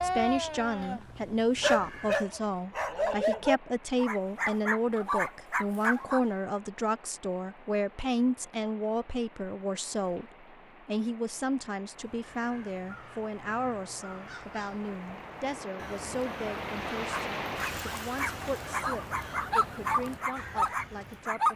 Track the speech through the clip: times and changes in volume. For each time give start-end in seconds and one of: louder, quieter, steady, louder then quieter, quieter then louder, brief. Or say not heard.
0.0-21.5 quieter.